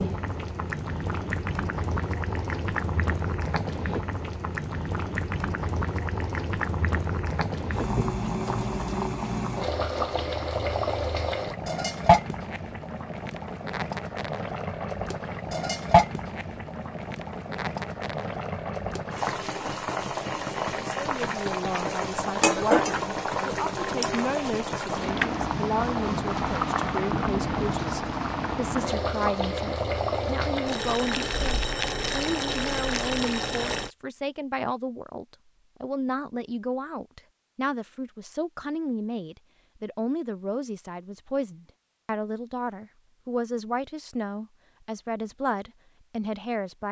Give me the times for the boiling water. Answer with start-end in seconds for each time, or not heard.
0.0-33.9.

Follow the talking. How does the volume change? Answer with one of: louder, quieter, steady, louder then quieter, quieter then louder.
steady.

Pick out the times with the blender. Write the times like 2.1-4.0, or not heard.
not heard.